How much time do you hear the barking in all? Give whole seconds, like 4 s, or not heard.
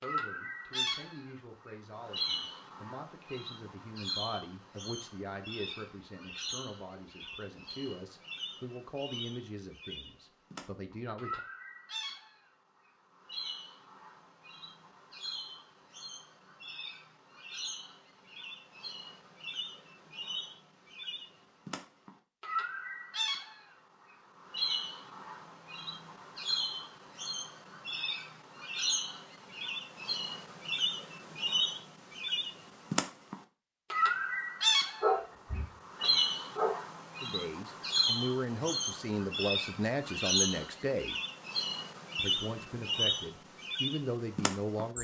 2 s.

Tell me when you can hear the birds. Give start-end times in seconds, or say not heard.
0.0-44.9.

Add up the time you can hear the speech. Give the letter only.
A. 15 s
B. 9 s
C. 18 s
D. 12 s
C.